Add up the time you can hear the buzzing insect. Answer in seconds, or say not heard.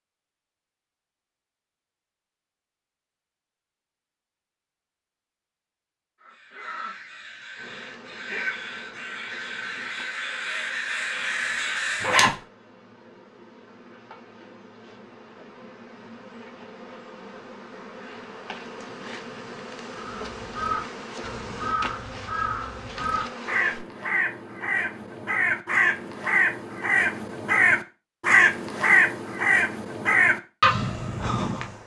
16 s.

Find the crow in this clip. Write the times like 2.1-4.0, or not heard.
6.2-12.2, 19.9-31.8.